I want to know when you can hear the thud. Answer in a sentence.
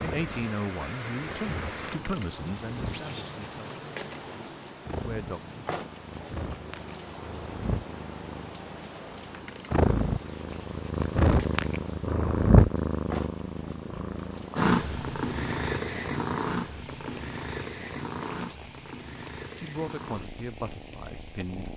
The thud can be heard from 2.9 to 3.4 s.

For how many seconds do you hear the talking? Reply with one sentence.
The talking can be heard for 8 seconds in total.